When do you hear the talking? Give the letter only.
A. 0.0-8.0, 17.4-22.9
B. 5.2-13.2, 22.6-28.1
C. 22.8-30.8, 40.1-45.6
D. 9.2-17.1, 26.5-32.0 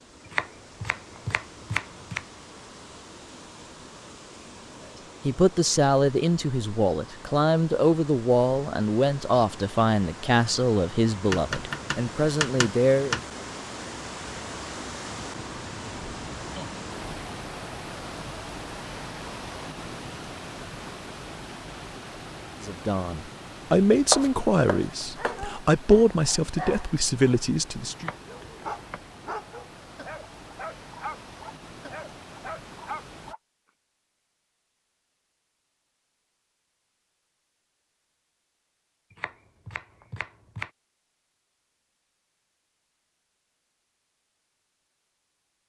B.